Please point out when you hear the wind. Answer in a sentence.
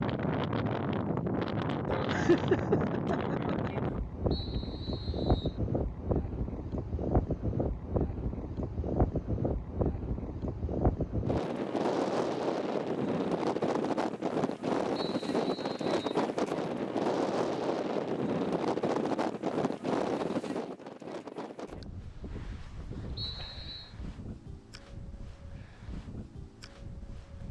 You can hear the wind from 0.0 to 27.4 s.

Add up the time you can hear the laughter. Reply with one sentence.
The laughter can be heard for 2 seconds in total.